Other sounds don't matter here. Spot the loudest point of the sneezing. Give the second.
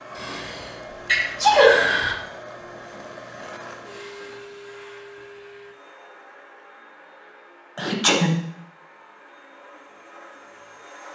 2 s.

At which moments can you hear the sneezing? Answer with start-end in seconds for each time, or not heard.
0.1-2.1, 7.8-8.3.